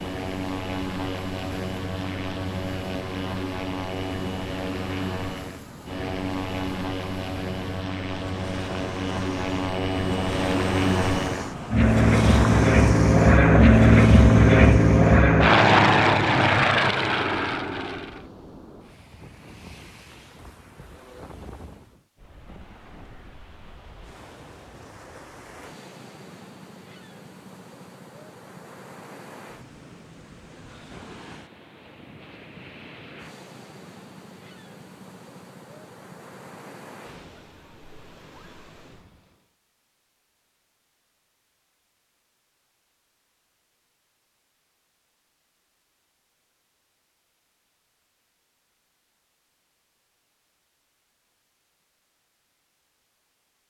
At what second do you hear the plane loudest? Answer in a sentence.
The loudest moment of the plane is at 14 seconds.